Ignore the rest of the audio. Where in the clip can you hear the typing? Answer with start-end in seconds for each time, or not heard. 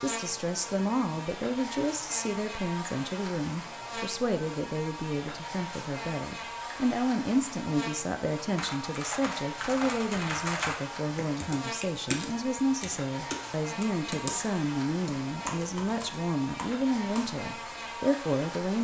8.3-17.4.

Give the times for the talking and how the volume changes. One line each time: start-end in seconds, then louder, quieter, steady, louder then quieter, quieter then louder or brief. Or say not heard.
0.0-18.7 steady.